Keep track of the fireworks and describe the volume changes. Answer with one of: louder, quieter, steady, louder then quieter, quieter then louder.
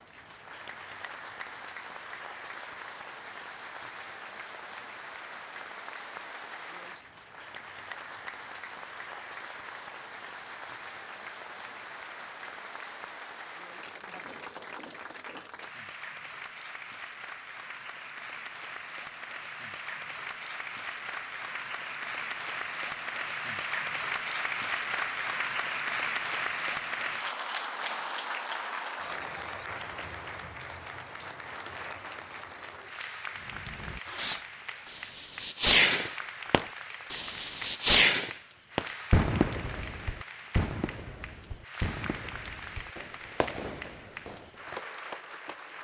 quieter.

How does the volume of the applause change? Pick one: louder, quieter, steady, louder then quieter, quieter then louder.
louder then quieter.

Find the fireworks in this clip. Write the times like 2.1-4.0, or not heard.
33.5-44.8.